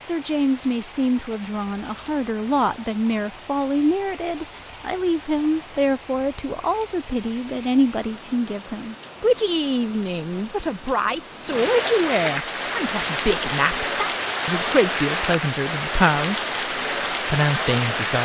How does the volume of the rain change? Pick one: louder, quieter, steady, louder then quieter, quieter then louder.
louder.